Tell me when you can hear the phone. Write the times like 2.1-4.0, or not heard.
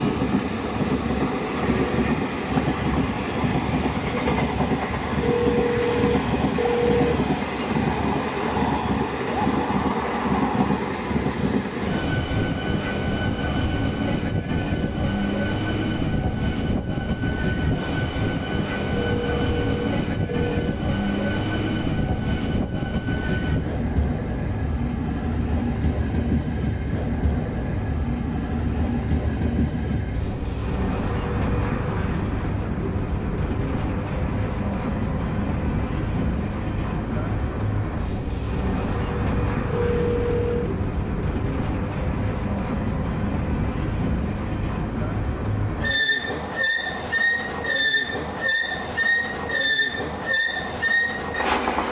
5.2-7.2, 18.9-20.6, 39.6-40.7.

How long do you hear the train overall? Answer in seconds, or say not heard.
52 s.